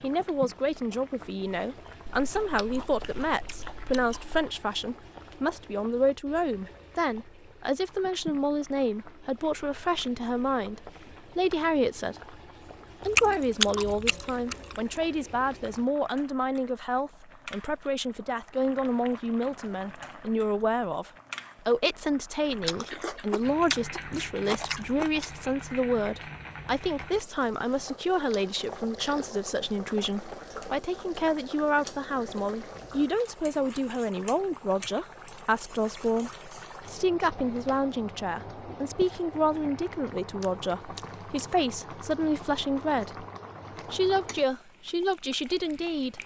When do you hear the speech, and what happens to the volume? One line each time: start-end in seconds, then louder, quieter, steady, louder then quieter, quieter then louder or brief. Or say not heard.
0.0-12.3 steady
13.1-43.2 steady
43.9-46.1 brief.